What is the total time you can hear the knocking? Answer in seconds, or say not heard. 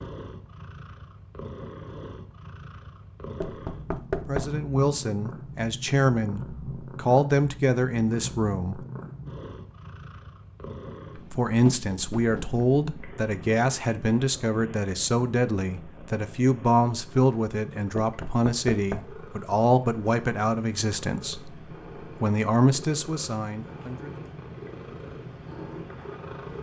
3 s.